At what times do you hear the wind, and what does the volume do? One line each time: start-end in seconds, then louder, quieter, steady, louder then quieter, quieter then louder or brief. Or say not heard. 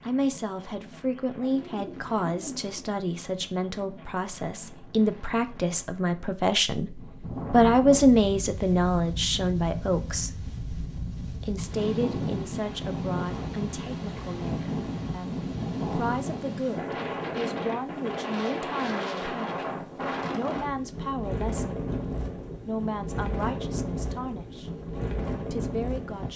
0.0-26.3 louder.